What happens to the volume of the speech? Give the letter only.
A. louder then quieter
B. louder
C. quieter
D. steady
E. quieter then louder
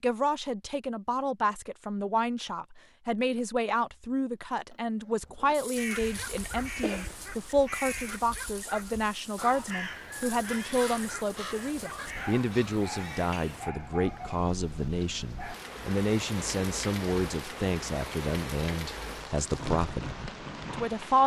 D.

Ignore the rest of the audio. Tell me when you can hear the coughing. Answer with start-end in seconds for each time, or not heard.
6.8-7.2.